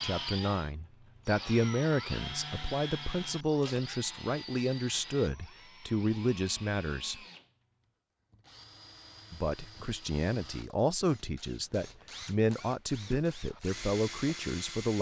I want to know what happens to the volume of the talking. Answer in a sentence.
The volume of the talking stays about the same.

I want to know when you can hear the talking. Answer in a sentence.
The talking can be heard from 0.0 to 7.2 s and from 9.3 to 14.9 s.